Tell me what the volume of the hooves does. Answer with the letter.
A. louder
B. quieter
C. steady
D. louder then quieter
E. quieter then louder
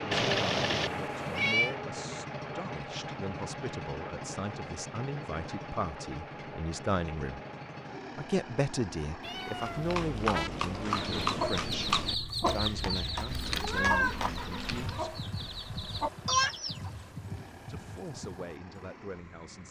B.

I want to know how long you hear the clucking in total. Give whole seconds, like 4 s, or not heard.
6 s.